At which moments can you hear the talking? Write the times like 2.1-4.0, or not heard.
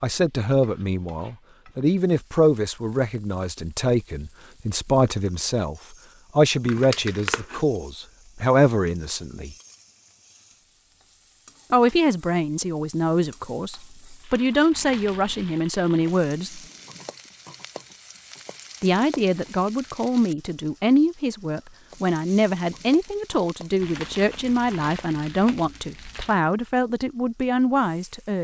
0.0-9.6, 11.7-16.6, 18.8-28.3.